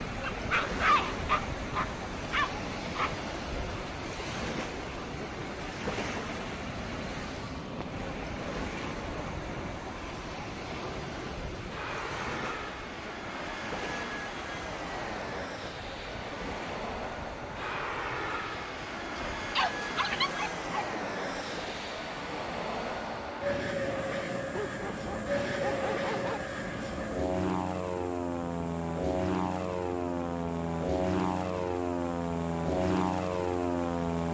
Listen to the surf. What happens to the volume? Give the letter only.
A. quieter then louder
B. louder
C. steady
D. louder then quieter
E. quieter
E.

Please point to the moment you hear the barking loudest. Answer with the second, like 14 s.
1 s.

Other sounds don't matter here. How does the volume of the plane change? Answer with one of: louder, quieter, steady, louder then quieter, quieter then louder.
louder.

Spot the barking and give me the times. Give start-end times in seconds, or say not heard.
0.2-3.1, 19.1-20.9, 24.5-26.4.